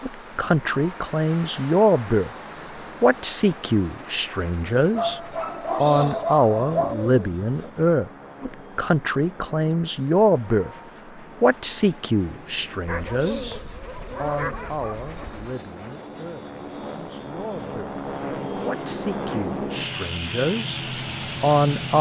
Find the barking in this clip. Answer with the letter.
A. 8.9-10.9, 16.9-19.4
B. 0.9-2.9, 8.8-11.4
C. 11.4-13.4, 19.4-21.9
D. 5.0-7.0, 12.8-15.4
D.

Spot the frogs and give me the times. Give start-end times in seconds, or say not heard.
not heard.